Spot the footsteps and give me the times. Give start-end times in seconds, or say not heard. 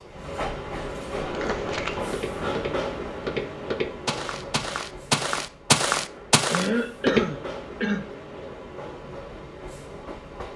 1.2-7.2.